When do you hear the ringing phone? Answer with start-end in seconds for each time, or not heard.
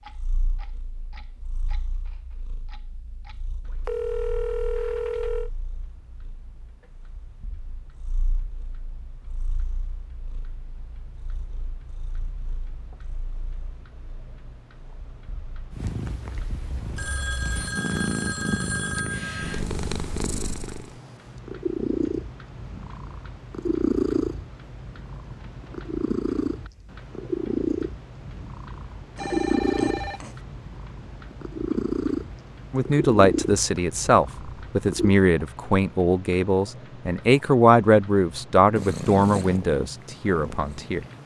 3.9-5.5, 16.9-19.6, 29.1-30.4.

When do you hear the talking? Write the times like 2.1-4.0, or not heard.
32.7-41.0.